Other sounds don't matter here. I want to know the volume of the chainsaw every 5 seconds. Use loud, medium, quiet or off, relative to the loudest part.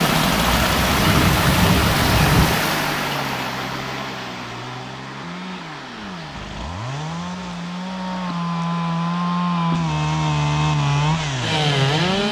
medium, medium, loud.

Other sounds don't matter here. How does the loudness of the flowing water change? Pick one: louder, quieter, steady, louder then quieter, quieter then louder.
quieter.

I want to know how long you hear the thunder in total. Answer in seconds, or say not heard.
2 s.